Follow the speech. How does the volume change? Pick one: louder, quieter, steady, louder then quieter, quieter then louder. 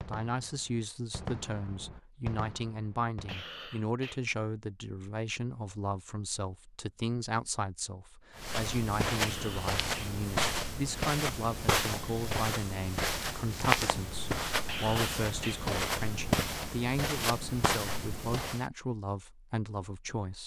steady.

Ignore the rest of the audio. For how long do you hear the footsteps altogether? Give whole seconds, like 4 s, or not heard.
10 s.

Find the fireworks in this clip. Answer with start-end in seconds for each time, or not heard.
0.0-3.5.